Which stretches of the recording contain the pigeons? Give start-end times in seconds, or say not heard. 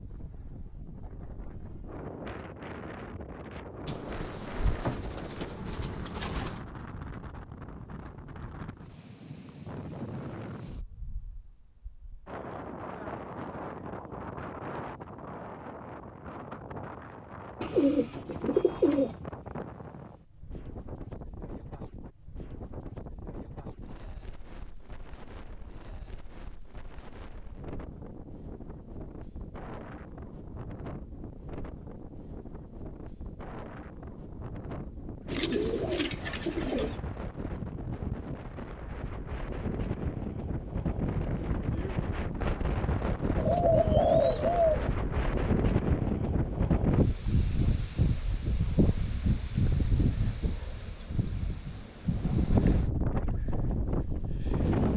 3.9-6.6, 17.6-19.1, 35.2-37.0, 43.4-44.9.